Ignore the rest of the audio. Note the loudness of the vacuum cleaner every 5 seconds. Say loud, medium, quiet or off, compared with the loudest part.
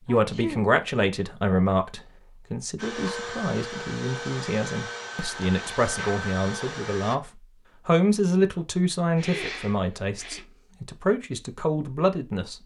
loud, loud, off.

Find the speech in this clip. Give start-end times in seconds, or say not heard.
0.1-12.6.